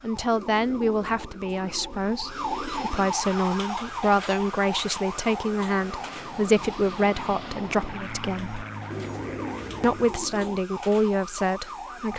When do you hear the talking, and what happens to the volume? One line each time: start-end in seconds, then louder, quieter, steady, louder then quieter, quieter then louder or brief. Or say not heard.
0.0-8.6 steady
9.8-12.1 brief.